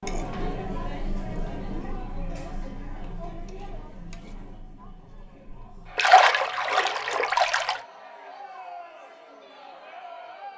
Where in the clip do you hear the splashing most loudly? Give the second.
6 s.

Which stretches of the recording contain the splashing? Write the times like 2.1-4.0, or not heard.
6.0-7.8.